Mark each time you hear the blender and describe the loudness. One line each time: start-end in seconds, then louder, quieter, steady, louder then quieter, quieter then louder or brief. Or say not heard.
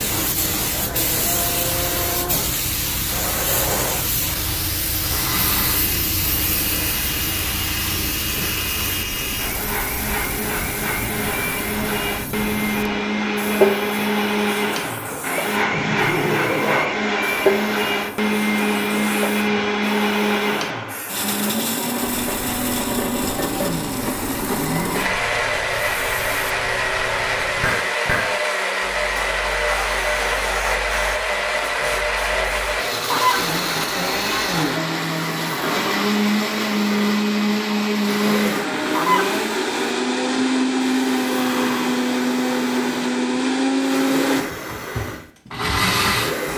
0.0-46.5 louder.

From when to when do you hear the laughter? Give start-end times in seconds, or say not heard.
15.7-16.9.